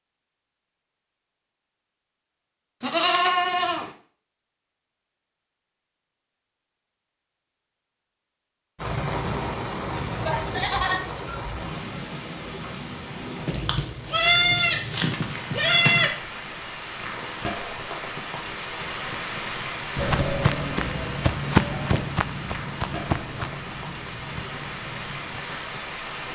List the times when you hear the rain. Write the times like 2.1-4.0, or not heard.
8.8-26.3.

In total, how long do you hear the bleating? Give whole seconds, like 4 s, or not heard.
7 s.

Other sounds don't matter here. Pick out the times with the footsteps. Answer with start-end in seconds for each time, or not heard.
19.9-25.4.